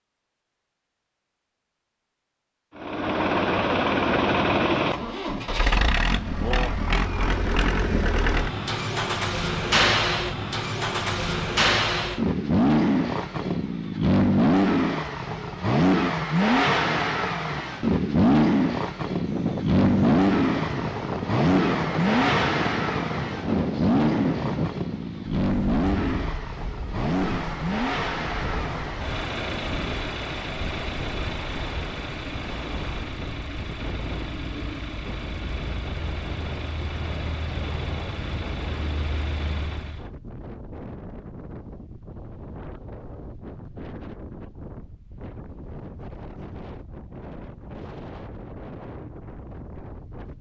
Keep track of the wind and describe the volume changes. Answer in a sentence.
The volume of the wind goes down.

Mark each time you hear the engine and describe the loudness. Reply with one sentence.
You can hear the engine from 2.8 to 40.0 s, getting quieter.